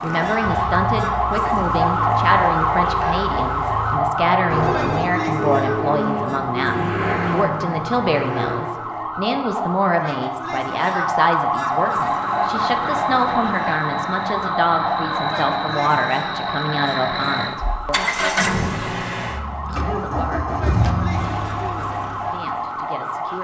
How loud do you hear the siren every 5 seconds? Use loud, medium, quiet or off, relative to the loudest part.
loud, medium, loud, medium, medium.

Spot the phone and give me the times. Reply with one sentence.
You can hear the phone from 4.5 to 5.2 s.